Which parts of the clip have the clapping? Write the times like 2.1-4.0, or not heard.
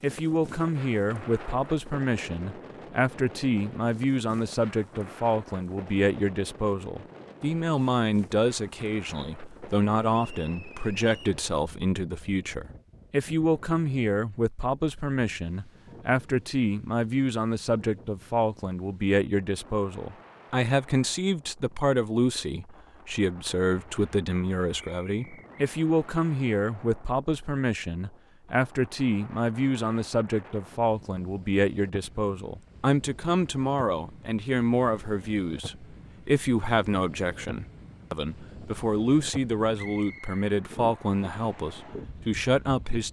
not heard.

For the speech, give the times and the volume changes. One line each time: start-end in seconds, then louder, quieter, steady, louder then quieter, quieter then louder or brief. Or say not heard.
0.0-43.0 steady.